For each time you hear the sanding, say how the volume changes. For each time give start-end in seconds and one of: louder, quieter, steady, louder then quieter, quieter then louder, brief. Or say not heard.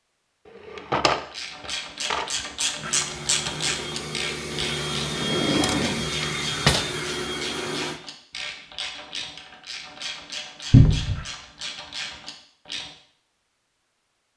not heard.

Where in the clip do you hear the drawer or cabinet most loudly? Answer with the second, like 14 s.
11 s.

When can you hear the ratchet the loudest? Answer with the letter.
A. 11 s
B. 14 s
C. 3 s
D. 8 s
C.